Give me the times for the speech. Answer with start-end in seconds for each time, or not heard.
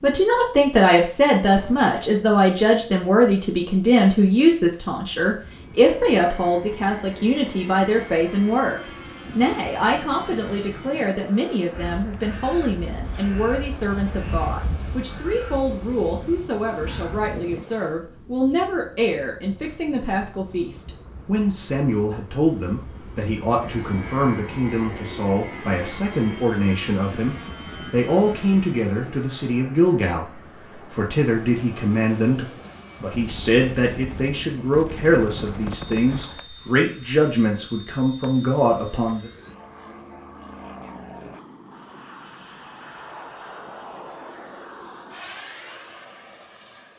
0.0-39.3.